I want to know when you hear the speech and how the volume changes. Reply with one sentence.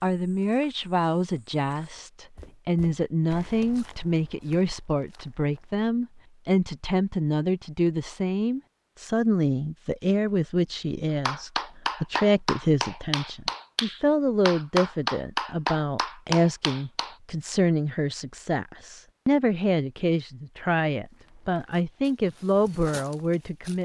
The speech can be heard from 0.0 to 23.7 s, at a steady volume.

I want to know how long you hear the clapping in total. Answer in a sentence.
The clapping can be heard for 6 seconds in total.